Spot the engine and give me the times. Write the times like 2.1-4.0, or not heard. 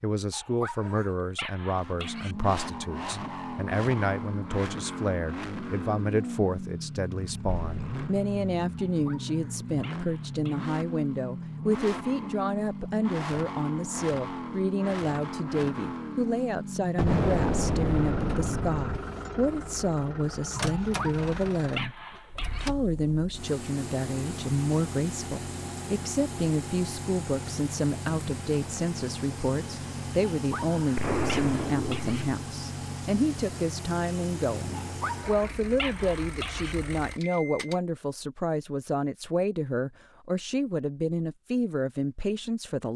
1.7-37.8.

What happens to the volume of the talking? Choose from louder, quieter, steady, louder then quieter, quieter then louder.
steady.